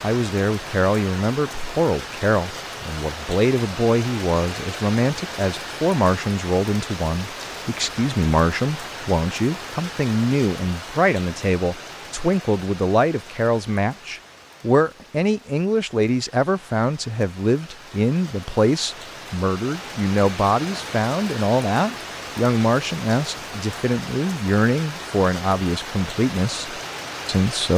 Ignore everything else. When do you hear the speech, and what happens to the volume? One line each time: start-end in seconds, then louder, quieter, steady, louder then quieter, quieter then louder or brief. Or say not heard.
0.0-27.7 steady.